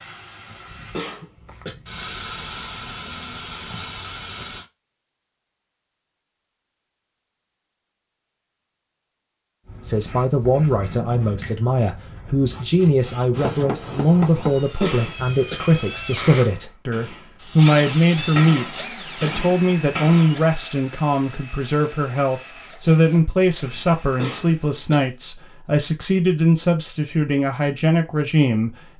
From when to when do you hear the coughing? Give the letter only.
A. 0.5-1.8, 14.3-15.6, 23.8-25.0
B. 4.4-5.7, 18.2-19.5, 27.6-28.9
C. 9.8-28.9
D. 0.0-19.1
A.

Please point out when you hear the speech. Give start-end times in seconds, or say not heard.
9.8-28.9.